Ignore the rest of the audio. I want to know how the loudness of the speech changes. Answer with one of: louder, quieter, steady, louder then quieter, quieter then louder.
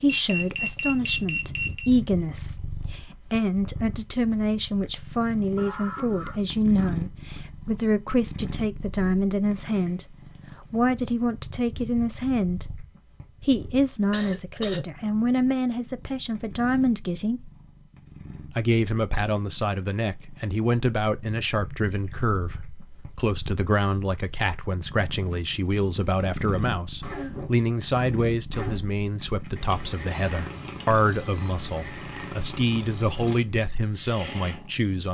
steady.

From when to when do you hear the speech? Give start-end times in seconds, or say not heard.
0.0-12.8, 13.4-17.5, 18.5-35.0.